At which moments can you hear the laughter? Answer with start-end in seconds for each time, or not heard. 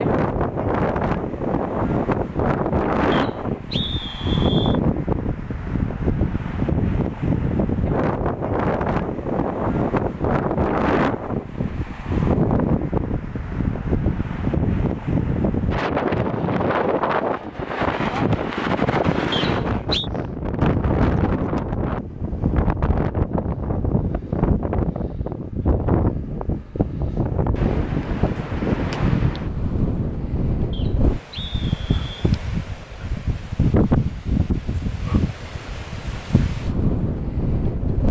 not heard.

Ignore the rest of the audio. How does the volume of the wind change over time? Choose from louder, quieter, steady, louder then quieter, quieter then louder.
steady.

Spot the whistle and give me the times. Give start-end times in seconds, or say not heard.
3.1-4.8, 19.3-20.1, 30.7-32.3.